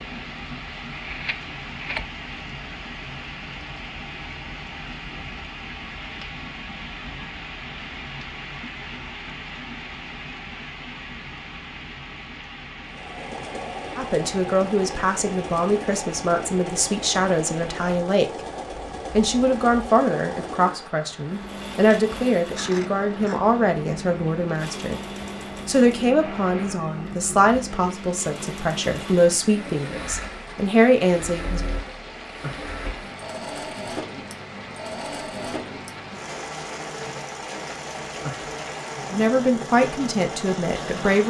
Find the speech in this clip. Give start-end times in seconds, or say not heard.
13.9-18.4, 19.1-25.0, 25.6-31.6, 39.1-41.2.